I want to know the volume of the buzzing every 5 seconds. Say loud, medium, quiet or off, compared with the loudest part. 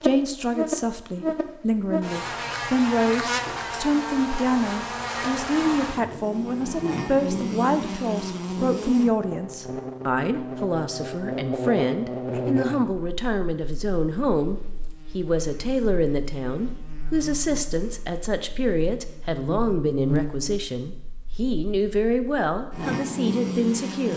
loud, loud, loud, quiet, loud.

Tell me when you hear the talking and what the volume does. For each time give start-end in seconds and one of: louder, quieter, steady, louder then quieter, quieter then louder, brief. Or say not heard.
0.0-24.1 steady.